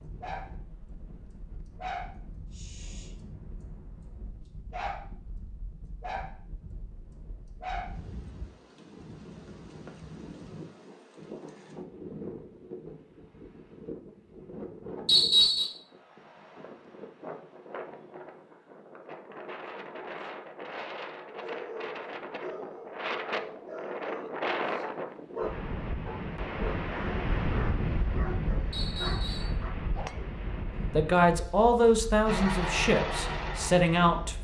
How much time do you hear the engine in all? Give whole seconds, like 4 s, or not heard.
2 s.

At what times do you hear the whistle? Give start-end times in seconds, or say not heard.
15.1-15.7, 28.7-29.6.